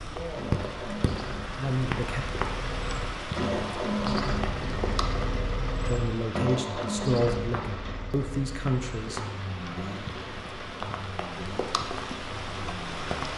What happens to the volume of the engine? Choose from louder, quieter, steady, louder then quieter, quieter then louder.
louder then quieter.